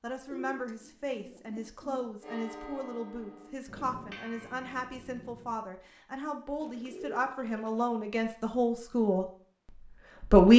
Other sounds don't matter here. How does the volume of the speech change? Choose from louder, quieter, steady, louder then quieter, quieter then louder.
louder.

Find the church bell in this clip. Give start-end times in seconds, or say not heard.
2.2-5.6.